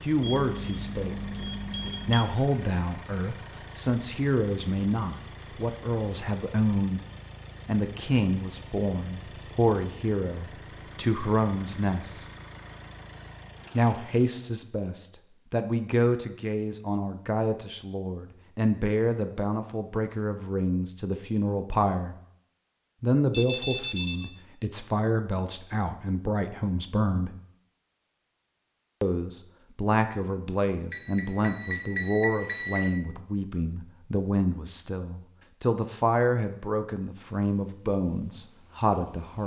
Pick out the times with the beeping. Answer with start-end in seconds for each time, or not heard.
0.2-2.2, 23.3-24.3, 30.9-32.9.